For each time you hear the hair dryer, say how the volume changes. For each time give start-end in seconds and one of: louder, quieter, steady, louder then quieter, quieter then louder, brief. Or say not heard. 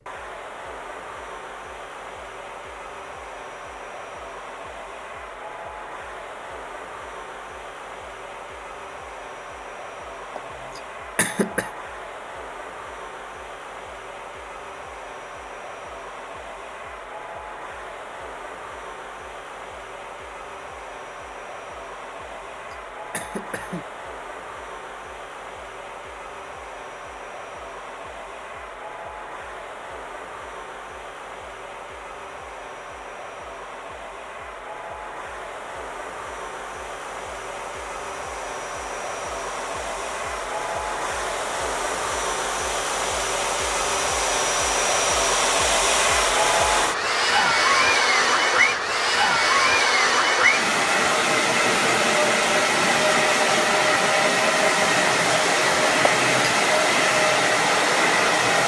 0.0-58.6 louder.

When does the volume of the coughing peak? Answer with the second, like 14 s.
11 s.